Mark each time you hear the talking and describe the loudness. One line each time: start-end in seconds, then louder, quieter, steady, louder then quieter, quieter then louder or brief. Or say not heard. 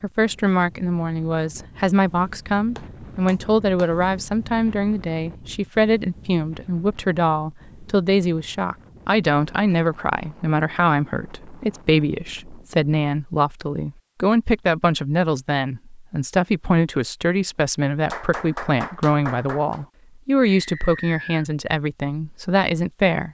0.0-23.2 steady.